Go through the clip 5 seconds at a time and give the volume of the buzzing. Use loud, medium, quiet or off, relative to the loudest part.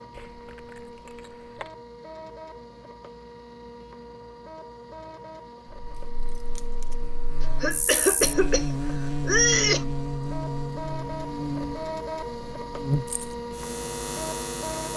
off, loud, loud.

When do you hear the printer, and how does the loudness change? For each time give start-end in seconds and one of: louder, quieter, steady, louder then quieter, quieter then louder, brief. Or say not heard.
0.0-14.9 louder.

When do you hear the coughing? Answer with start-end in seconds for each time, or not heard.
7.4-9.8.